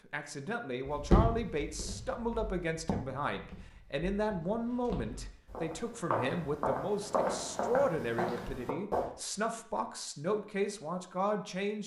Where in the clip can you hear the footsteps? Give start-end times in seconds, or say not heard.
0.8-9.1.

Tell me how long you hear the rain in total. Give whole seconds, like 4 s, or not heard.
not heard.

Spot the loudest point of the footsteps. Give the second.
1 s.